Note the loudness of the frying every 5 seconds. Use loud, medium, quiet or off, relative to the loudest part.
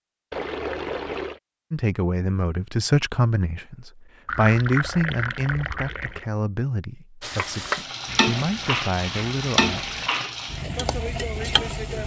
off, loud, loud.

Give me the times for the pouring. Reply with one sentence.
The pouring can be heard from 0.3 to 1.4 s, from 4.2 to 6.2 s and from 8.1 to 10.1 s.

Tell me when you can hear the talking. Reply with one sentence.
You can hear the talking from 1.7 to 10.0 s.